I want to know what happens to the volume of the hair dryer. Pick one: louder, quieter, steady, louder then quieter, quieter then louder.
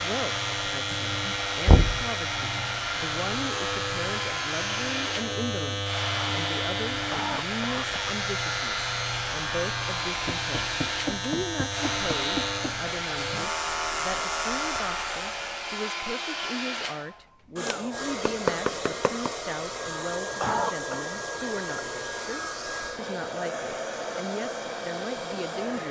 steady.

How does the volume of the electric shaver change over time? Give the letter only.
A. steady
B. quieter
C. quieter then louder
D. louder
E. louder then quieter
A.